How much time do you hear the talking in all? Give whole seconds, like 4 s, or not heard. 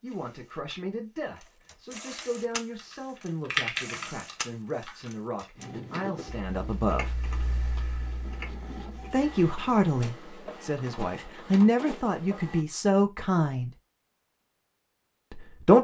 12 s.